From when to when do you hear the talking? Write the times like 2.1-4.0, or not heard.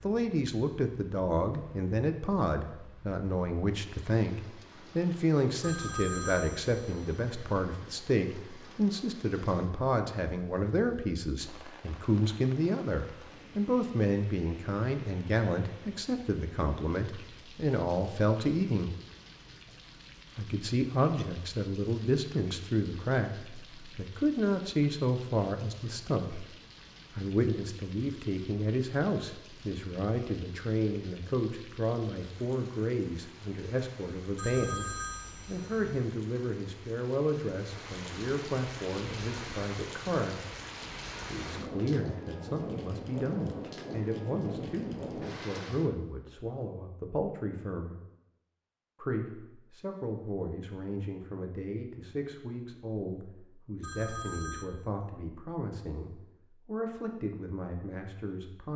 0.0-18.9, 20.4-26.4, 27.1-40.4, 41.2-48.0, 49.0-58.7.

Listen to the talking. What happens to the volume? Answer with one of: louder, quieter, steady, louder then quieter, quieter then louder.
quieter.